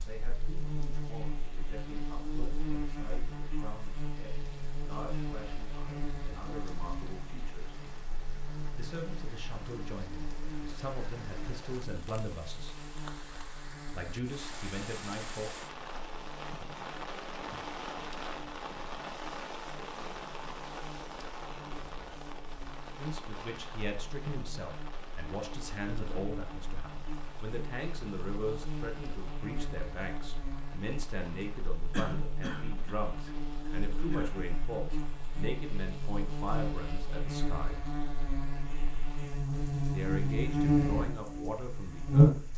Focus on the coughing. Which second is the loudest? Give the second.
32 s.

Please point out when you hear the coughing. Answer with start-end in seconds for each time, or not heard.
31.9-34.3.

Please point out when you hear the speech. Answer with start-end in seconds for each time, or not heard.
0.0-7.8, 8.8-12.8, 13.9-15.5, 22.9-37.8, 39.9-42.5.